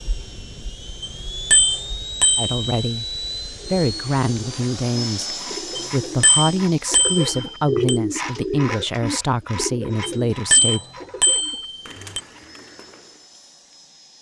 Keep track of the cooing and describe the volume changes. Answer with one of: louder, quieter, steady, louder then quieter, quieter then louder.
louder then quieter.